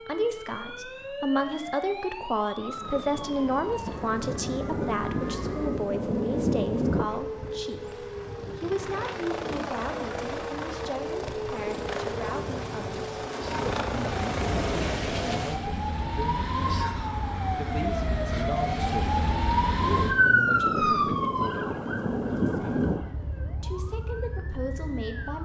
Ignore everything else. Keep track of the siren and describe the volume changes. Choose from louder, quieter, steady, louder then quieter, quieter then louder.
louder.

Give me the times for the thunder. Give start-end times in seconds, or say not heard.
3.9-7.1, 19.9-23.1.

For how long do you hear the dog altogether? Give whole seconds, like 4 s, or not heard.
not heard.